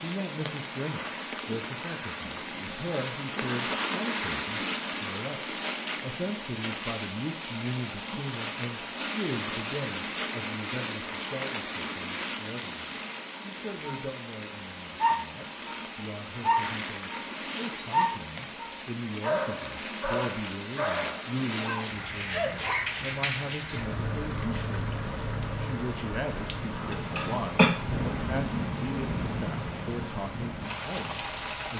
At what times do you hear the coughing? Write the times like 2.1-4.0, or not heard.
26.9-27.7.